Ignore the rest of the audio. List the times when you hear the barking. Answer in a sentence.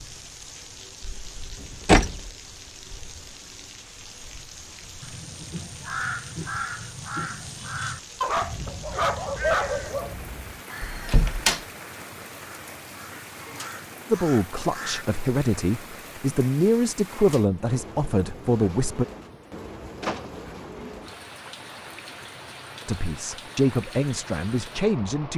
The barking can be heard from 8.2 to 10.2 s.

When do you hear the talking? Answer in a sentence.
The talking can be heard from 14.1 to 19.1 s and from 22.9 to 25.3 s.